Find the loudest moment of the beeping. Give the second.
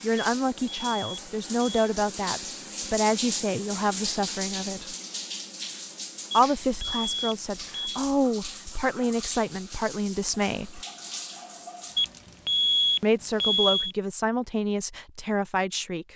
13 s.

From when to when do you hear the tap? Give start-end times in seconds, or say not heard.
0.0-12.4.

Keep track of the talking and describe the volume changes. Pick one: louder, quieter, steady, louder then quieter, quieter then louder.
steady.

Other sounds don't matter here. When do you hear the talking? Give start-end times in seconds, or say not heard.
0.0-5.0, 6.3-10.8, 13.0-16.1.